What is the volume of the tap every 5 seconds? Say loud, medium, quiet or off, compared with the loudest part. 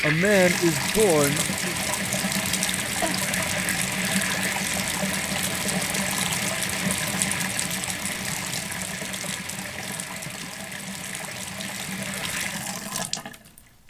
loud, loud, medium.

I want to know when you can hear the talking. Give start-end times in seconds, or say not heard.
0.0-1.8.